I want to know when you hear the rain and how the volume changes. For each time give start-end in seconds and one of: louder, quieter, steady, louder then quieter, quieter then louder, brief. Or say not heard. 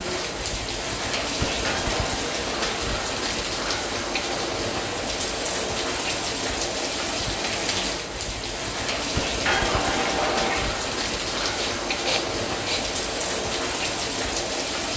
0.0-14.9 steady.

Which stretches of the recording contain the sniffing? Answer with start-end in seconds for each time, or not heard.
11.4-12.8.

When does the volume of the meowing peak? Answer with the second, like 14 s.
10 s.